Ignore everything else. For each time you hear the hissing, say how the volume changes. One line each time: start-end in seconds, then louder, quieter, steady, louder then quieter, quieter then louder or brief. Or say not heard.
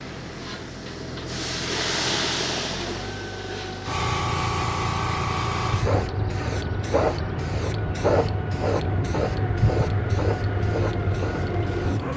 0.0-12.1 steady.